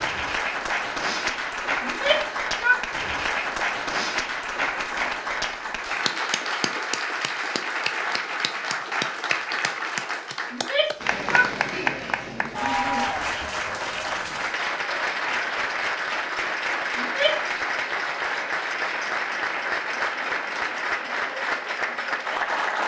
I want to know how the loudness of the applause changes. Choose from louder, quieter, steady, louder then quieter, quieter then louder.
steady.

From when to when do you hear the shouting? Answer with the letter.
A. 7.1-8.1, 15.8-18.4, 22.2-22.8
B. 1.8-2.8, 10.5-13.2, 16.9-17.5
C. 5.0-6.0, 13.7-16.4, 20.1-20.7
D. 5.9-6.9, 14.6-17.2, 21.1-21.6
B.